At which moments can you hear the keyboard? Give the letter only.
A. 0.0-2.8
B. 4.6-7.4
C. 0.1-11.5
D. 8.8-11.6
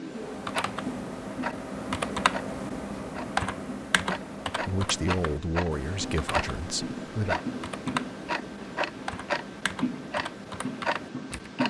C.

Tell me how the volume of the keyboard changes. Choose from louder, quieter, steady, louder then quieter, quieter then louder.
quieter.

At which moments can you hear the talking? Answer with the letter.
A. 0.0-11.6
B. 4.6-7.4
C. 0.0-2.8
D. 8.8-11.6
B.